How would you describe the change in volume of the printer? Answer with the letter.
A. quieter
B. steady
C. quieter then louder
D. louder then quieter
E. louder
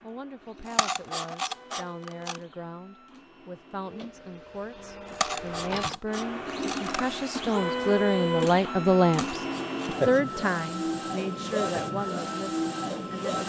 E.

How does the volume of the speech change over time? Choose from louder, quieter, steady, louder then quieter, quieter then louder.
louder then quieter.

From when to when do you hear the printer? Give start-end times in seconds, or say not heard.
0.0-13.4.